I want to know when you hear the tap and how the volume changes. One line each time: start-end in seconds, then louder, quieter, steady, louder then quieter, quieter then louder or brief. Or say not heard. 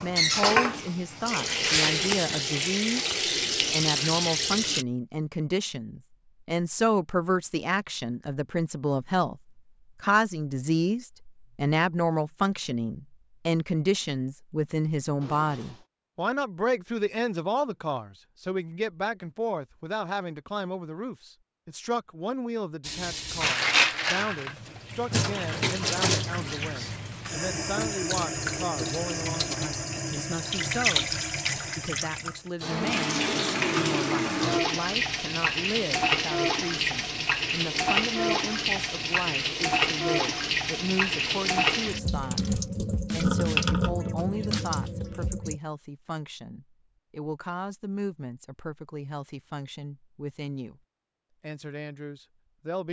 0.0-4.8 steady
22.8-45.6 steady.